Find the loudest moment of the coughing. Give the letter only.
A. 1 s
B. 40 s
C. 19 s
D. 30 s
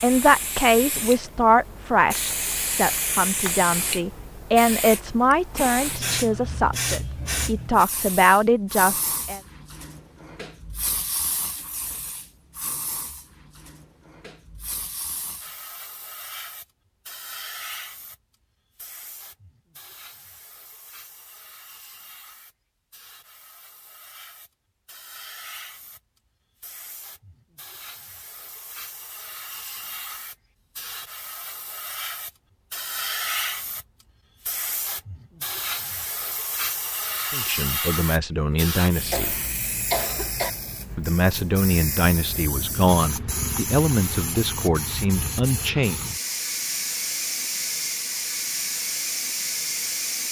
B.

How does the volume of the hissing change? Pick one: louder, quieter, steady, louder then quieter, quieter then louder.
quieter then louder.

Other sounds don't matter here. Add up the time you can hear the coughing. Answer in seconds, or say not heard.
2 s.